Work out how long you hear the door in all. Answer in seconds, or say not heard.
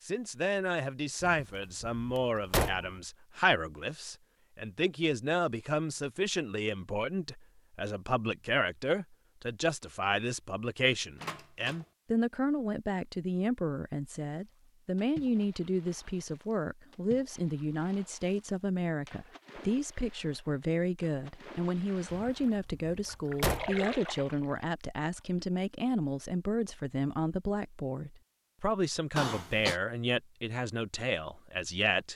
4 s.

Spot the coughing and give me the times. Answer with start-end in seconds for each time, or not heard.
29.1-29.8.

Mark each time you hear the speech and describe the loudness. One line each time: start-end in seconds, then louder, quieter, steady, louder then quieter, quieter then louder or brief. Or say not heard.
0.0-32.1 steady.